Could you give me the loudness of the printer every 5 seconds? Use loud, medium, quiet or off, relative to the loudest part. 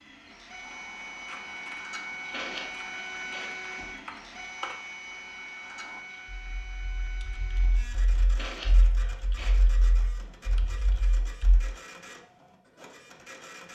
loud, medium, medium.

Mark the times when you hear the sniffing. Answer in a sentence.
The sniffing can be heard from 2.3 to 3.5 s and from 8.3 to 9.6 s.